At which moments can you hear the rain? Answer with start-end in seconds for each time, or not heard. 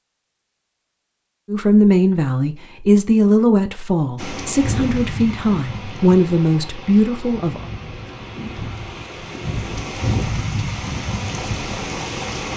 4.2-12.5.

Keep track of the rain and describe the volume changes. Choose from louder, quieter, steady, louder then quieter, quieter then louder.
quieter then louder.